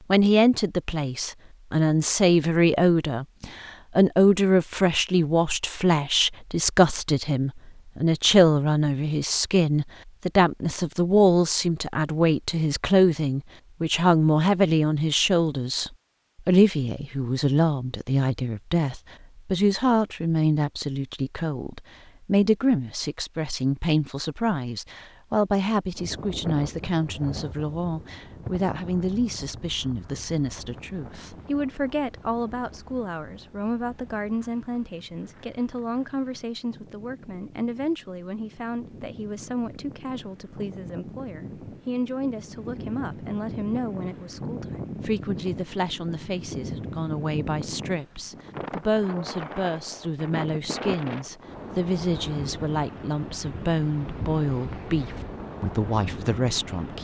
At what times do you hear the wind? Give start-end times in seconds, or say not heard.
25.9-56.9.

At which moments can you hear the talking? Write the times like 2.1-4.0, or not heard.
0.1-56.9.